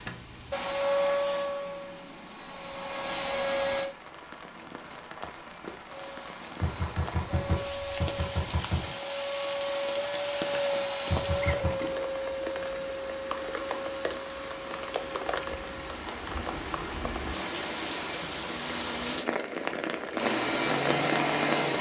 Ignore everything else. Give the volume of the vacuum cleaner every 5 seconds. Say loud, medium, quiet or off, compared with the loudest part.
loud, medium, medium, quiet, loud.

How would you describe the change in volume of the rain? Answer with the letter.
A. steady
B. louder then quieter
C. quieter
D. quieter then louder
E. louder
E.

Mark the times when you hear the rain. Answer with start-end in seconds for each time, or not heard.
0.0-21.7.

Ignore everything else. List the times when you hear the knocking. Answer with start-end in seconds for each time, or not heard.
6.6-8.9, 11.1-11.8.